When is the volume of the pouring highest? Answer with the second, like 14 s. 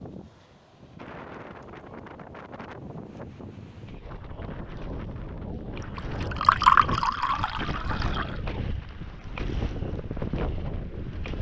7 s.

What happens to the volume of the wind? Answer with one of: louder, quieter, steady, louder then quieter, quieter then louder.
louder.